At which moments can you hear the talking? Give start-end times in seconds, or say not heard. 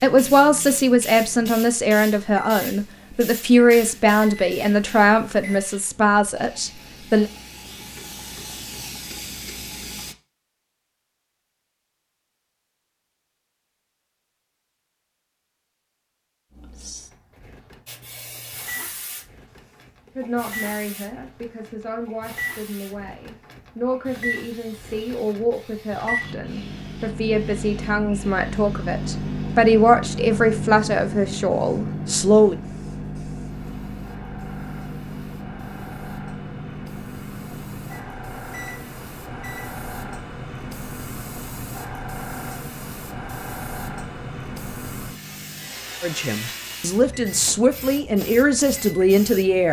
0.0-7.3, 20.1-32.5, 46.0-49.6.